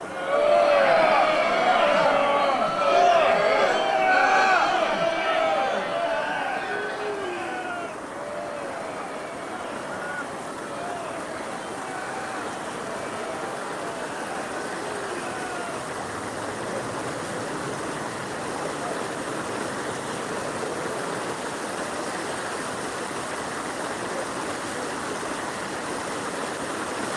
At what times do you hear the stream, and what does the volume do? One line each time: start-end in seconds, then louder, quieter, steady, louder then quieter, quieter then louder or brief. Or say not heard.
0.0-27.1 louder.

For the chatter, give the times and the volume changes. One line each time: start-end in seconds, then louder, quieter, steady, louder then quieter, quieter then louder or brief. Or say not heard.
0.1-21.4 quieter.